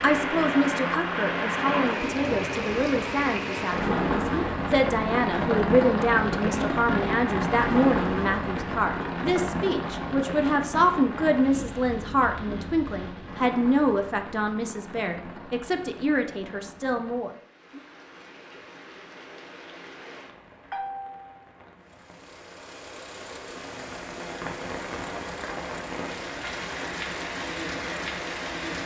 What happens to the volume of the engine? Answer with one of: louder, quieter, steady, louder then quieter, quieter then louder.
steady.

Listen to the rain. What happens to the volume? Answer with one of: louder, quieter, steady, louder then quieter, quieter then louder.
quieter then louder.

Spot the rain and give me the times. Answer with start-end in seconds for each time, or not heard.
0.0-28.8.